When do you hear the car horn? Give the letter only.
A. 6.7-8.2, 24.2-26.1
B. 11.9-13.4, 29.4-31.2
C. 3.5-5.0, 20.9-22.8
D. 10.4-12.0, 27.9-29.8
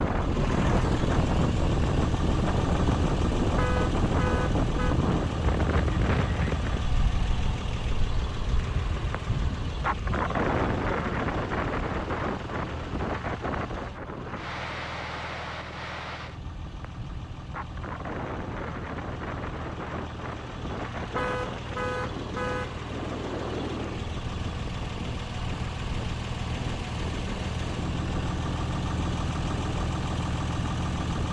C.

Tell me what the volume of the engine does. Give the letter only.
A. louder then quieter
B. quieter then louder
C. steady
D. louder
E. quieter
B.